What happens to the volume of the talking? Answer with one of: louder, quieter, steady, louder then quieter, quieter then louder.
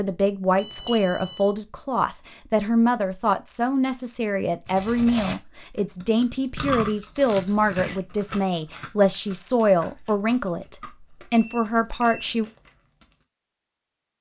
steady.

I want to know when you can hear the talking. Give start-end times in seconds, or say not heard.
0.0-12.4.